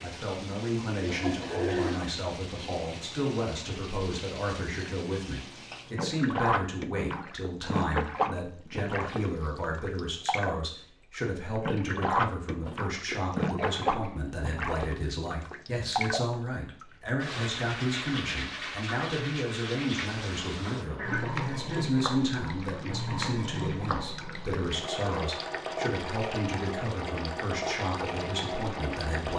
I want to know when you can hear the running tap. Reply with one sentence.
The running tap can be heard from 0.0 to 29.3 s.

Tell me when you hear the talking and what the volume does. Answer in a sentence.
You can hear the talking from 0.0 to 29.3 s, at a steady volume.